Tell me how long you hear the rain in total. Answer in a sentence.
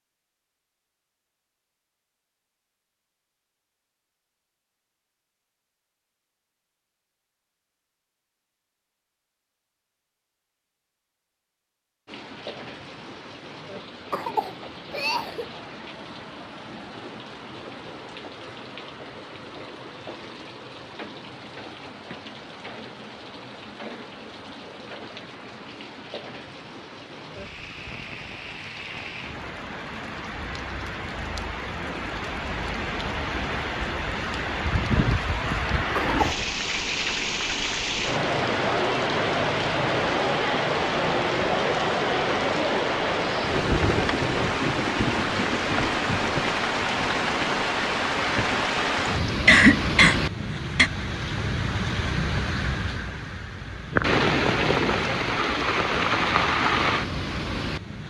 The rain can be heard for 46 seconds in total.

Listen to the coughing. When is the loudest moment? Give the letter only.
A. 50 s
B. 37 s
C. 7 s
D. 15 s
A.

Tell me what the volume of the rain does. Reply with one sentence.
The loudness of the rain goes up.